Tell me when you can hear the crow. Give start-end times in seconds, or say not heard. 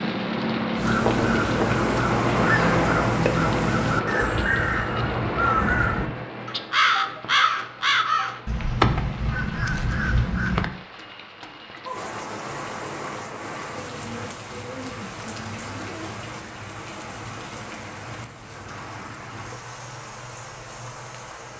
0.8-10.7.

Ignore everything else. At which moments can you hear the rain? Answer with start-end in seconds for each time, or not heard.
0.0-21.5.